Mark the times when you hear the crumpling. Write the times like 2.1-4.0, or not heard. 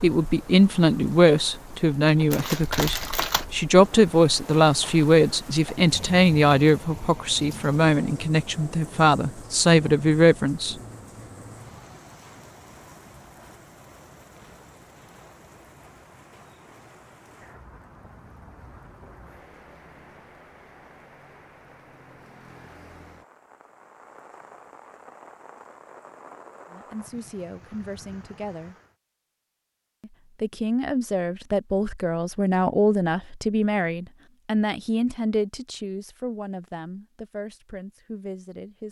2.3-3.5.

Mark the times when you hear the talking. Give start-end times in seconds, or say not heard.
0.0-10.8, 26.7-28.8, 30.0-38.8.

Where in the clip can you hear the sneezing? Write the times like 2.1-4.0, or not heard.
not heard.